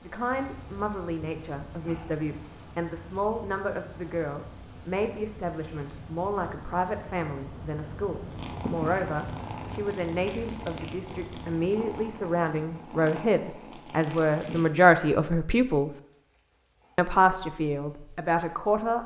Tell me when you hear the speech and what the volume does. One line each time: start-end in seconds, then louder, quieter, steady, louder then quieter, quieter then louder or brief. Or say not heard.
0.0-15.9 louder
16.9-19.0 brief.